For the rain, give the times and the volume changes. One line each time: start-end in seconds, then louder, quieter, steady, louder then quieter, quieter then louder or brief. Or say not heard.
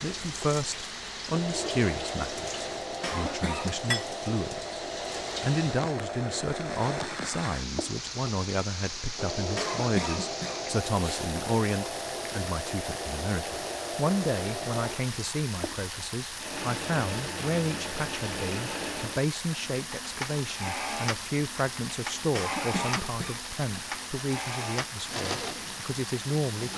0.0-26.7 steady.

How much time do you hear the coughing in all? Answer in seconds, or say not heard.
4 s.